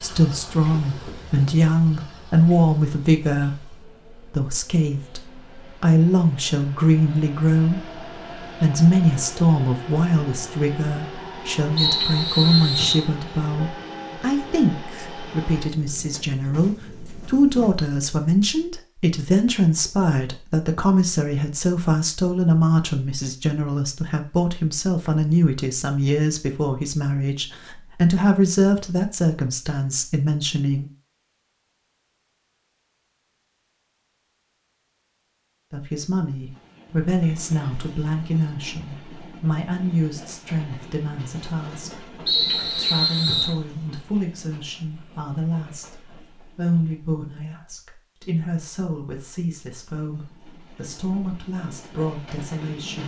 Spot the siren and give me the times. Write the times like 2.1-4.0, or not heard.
not heard.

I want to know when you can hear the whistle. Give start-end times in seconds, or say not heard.
11.8-13.1, 42.2-43.5.